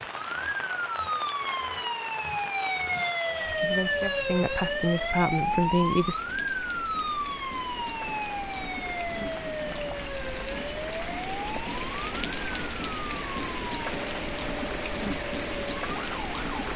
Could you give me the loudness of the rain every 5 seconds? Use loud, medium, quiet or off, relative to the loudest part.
medium, medium, loud, loud.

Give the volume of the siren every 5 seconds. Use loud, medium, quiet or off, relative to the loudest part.
loud, loud, medium, medium.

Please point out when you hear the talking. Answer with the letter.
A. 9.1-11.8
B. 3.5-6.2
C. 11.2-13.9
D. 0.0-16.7
B.